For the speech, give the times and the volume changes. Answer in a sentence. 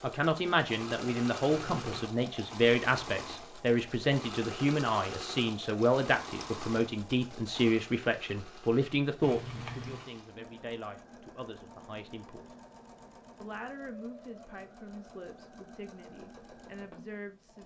You can hear the speech from 0.0 to 12.6 s, getting quieter; and from 13.4 to 17.6 s, getting quieter then louder.